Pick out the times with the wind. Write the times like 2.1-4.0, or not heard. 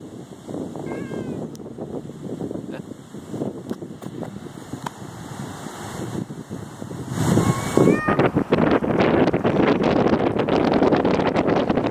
0.0-11.8.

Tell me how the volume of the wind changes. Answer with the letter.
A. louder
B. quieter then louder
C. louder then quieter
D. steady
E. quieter
A.